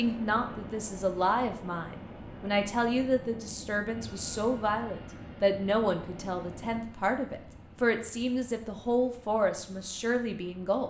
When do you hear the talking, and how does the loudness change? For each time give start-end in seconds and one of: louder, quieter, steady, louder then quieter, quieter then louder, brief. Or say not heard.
0.0-10.8 steady.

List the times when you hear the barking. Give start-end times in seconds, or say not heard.
not heard.